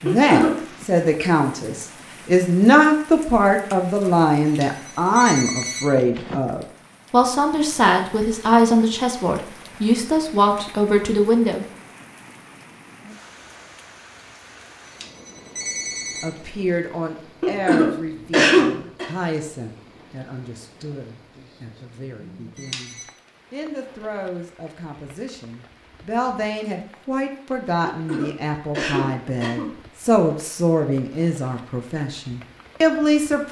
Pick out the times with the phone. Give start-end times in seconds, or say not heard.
4.5-6.3, 14.8-16.3, 22.6-23.1.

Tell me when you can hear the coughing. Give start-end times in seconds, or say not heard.
0.1-0.6, 17.4-19.1, 27.8-29.7.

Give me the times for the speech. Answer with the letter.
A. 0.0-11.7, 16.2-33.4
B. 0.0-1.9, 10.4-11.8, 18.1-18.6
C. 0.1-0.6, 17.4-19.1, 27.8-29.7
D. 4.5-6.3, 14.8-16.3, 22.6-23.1
A.